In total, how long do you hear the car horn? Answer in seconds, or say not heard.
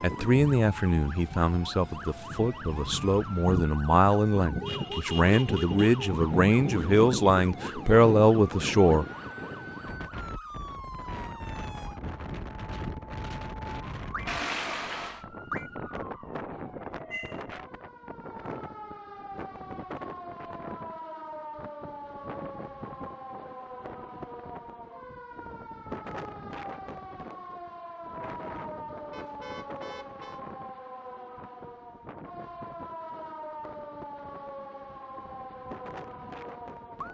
4 s.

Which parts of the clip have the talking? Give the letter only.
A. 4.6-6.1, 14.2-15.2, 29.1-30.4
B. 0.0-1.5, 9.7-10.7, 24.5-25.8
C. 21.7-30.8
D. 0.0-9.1
D.